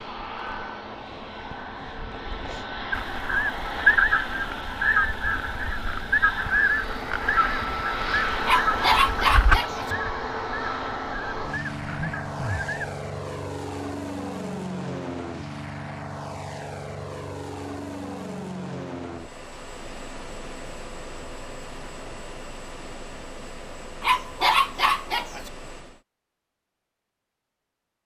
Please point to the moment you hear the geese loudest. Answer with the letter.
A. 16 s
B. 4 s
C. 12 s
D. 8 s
B.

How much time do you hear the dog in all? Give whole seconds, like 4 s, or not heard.
3 s.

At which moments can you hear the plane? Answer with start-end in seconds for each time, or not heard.
0.0-26.1.